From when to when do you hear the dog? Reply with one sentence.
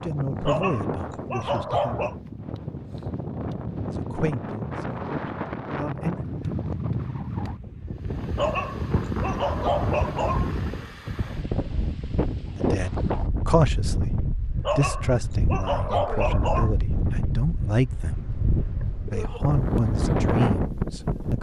You can hear the dog from 0.5 to 2.1 s, from 8.3 to 10.5 s and from 14.6 to 16.7 s.